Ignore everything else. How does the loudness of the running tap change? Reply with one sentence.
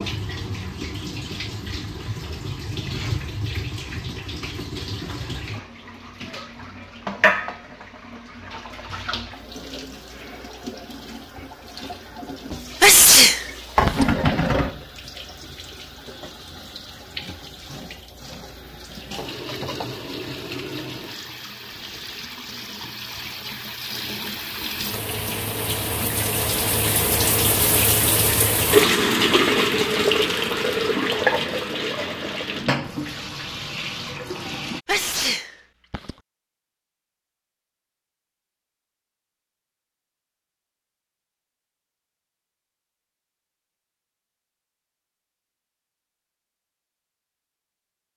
The loudness of the running tap goes up.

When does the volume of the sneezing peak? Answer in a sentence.
The volume of the sneezing peaks at 13 seconds.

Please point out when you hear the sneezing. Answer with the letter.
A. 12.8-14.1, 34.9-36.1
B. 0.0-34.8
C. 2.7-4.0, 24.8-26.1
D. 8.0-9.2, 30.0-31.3
A.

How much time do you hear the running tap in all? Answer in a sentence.
The running tap can be heard for 35 seconds in total.